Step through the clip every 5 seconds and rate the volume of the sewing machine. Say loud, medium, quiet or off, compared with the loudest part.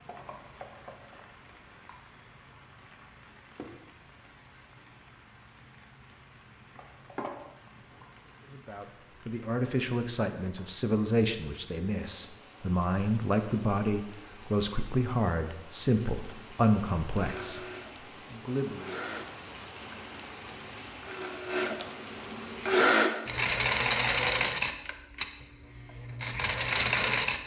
off, off, off, quiet, loud, loud.